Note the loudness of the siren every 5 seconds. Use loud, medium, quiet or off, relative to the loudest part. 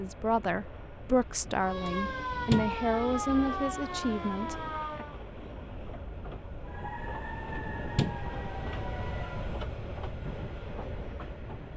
loud, medium, off.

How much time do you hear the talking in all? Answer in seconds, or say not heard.
5 s.